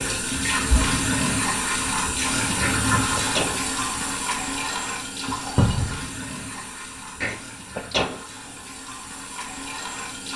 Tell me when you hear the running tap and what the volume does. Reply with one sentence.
The running tap can be heard from 0.0 to 10.3 s, getting quieter.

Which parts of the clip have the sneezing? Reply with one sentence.
The sneezing can be heard from 2.6 to 3.5 s and from 7.2 to 8.2 s.